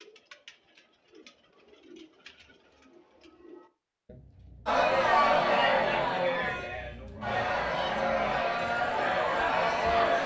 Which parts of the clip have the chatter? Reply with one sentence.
The chatter can be heard from 4.7 to 10.2 s.